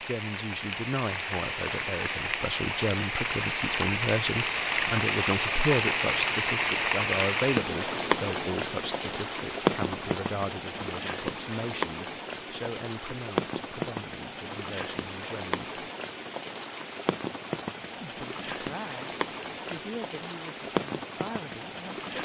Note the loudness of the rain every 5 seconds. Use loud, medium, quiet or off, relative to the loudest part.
loud, loud, medium, medium, medium.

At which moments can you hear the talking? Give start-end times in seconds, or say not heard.
0.0-15.8, 18.0-22.0.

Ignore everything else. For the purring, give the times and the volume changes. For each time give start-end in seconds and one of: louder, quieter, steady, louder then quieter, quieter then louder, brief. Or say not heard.
not heard.